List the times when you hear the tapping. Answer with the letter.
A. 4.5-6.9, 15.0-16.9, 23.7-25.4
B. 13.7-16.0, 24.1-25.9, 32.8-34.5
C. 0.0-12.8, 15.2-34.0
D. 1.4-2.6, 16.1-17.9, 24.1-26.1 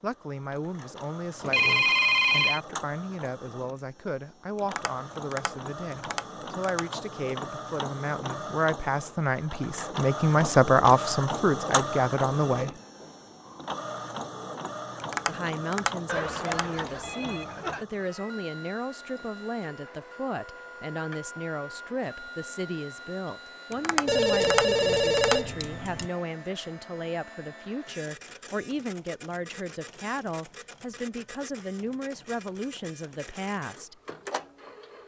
A.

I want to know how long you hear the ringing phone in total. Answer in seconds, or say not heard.
5 s.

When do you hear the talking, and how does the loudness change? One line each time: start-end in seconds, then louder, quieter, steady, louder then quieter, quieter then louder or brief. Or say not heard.
0.0-12.8 louder
15.2-34.0 steady.